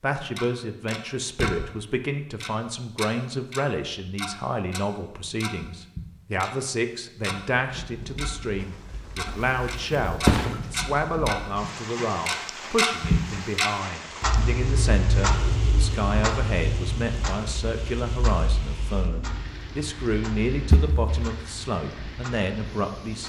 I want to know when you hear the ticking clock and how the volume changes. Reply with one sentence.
The ticking clock can be heard briefly from 0.1 to 1.6 s; and from 2.4 to 23.2 s, getting louder then quieter.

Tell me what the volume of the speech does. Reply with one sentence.
The loudness of the speech stays about the same.